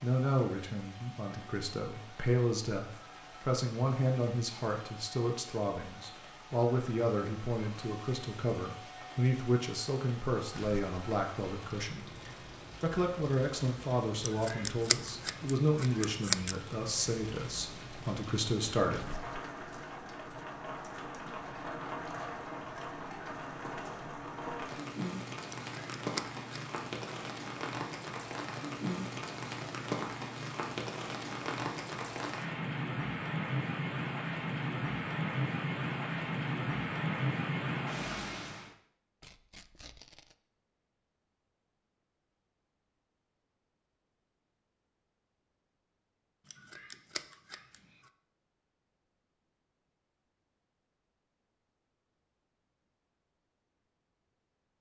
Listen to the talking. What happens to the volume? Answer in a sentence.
The loudness of the talking stays about the same.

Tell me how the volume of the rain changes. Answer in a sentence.
The loudness of the rain goes up.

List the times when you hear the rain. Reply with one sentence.
You can hear the rain from 0.0 to 38.7 s.